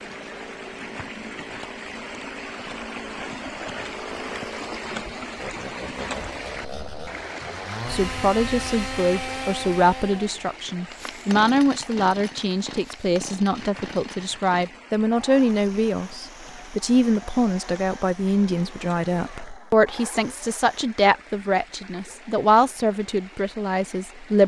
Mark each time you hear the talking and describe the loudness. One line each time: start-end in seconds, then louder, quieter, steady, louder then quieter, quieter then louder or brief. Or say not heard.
7.9-24.4 steady.